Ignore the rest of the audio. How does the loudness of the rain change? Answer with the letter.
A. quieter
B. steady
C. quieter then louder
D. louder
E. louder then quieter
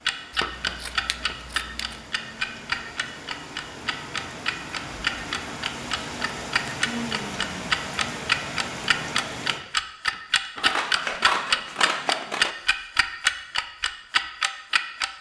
D.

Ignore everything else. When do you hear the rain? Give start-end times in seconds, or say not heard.
0.0-9.7.